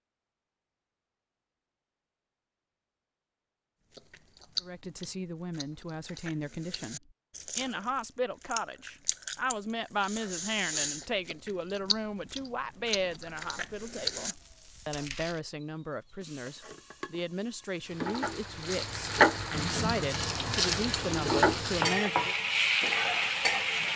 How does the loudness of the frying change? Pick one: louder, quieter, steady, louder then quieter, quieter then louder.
louder.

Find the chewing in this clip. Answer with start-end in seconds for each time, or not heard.
4.0-15.4.